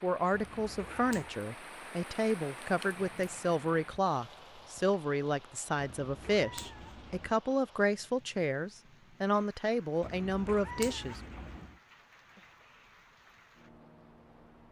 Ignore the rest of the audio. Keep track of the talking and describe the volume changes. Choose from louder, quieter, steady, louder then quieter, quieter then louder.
steady.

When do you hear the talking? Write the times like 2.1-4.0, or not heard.
0.0-11.2.